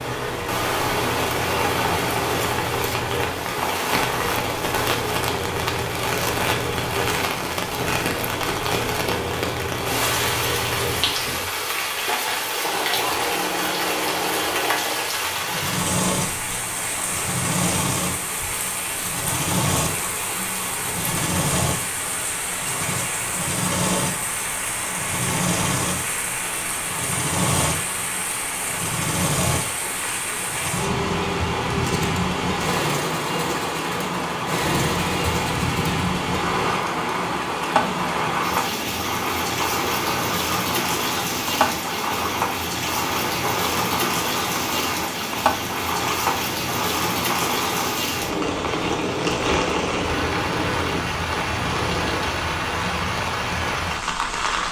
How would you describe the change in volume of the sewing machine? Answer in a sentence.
The volume of the sewing machine stays about the same.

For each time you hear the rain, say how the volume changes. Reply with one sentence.
The rain can be heard from 0.0 to 54.6 s, at a steady volume.